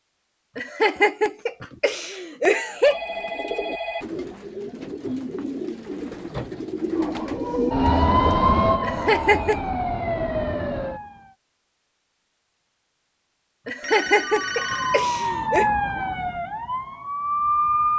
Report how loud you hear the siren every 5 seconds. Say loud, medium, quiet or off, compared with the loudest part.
off, loud, medium, loud.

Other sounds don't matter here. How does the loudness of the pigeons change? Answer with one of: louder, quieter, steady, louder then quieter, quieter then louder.
louder.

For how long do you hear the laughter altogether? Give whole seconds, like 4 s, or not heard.
5 s.